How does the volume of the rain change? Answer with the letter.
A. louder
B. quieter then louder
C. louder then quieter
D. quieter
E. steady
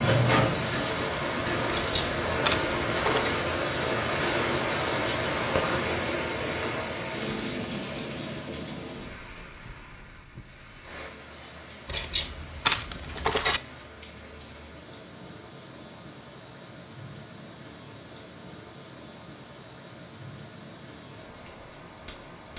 D.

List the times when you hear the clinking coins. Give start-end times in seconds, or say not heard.
1.8-3.4, 11.8-13.6.